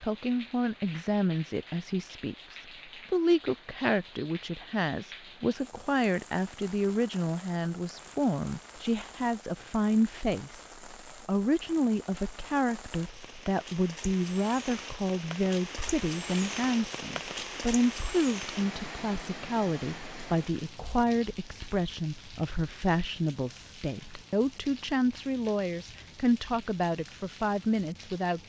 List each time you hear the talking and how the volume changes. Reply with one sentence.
You can hear the talking from 0.0 to 28.4 s, at a steady volume.